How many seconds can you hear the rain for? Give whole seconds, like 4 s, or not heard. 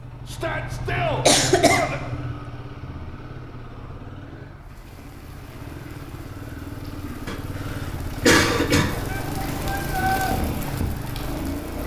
7 s.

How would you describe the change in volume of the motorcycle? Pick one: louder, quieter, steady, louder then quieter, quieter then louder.
quieter then louder.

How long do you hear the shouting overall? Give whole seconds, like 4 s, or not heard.
3 s.